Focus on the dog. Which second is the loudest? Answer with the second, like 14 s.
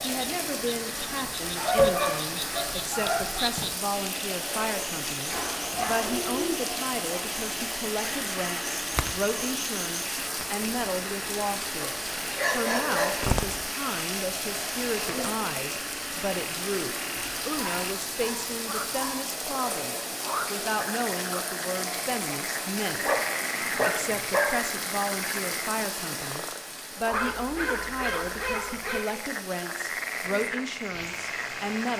2 s.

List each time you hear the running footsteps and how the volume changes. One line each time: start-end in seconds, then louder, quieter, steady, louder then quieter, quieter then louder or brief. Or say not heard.
not heard.